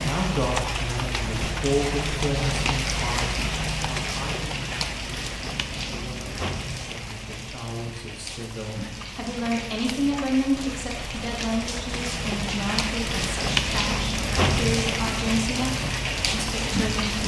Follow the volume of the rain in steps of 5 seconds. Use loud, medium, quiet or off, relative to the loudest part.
loud, medium, loud, loud.